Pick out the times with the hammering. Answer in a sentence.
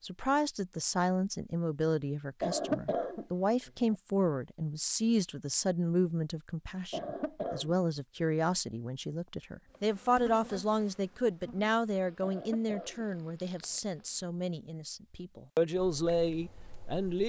You can't hear the hammering here.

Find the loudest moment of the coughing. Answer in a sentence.
The volume of the coughing peaks at 3 seconds.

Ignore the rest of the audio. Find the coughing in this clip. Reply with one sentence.
You can hear the coughing from 2.4 to 4.0 s, from 6.9 to 7.8 s and from 12.2 to 13.8 s.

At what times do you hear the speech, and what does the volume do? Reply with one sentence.
The speech can be heard from 0.0 to 17.2 s, at a steady volume.